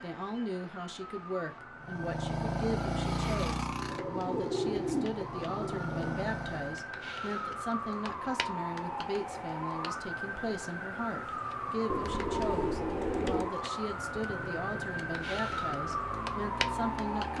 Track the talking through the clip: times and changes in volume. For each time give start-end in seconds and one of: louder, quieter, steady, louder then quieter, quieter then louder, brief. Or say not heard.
0.0-17.3 steady.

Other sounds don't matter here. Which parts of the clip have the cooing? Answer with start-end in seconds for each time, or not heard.
3.9-6.3, 11.9-13.5.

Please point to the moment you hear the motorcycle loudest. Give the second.
3 s.